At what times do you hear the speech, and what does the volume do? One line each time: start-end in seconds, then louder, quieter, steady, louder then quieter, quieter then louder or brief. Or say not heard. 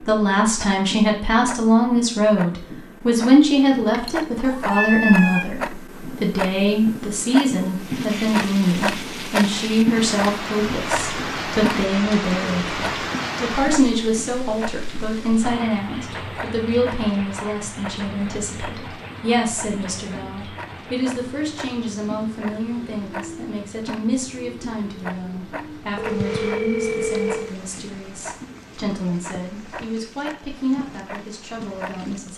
0.1-32.3 quieter.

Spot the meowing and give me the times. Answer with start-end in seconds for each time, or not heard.
3.8-5.5.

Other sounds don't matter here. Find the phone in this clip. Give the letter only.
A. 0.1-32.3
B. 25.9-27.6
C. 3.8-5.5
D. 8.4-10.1
B.